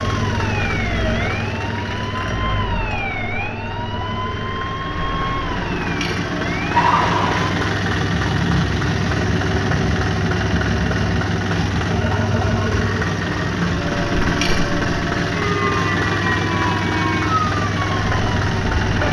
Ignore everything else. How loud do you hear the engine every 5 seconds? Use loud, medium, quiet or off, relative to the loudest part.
medium, loud, loud, loud.